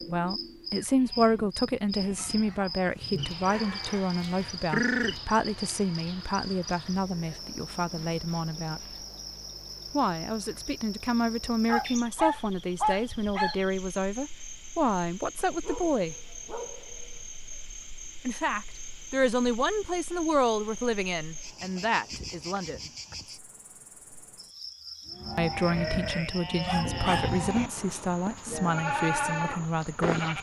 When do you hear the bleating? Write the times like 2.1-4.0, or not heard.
0.8-6.0, 25.1-30.3.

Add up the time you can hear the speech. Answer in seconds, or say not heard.
25 s.